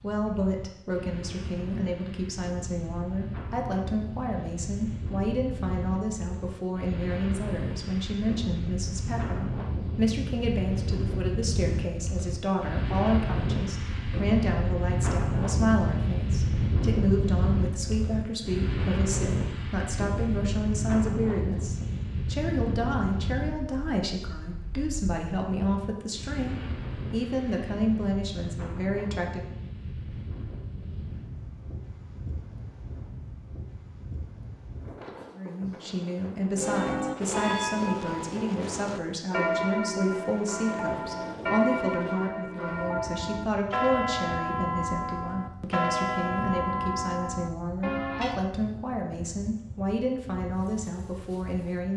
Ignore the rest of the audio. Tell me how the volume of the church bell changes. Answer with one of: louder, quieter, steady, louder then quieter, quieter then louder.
steady.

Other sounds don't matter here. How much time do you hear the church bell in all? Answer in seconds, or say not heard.
12 s.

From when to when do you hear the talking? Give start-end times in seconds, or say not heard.
0.0-29.5, 35.4-51.9.